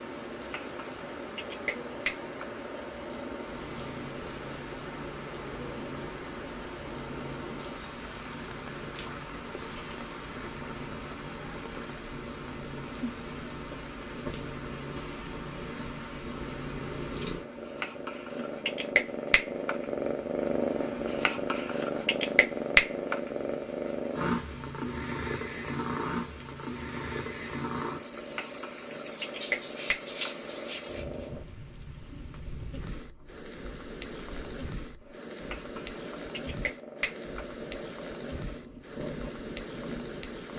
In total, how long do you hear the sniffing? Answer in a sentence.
You can hear the sniffing for 2 seconds altogether.